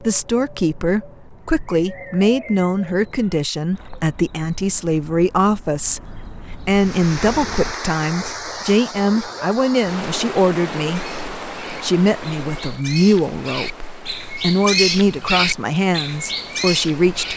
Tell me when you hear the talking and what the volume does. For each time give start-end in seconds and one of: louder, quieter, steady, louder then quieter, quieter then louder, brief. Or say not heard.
0.0-17.3 steady.